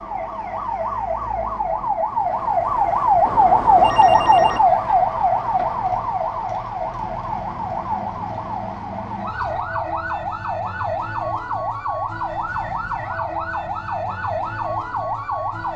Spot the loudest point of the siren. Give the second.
4 s.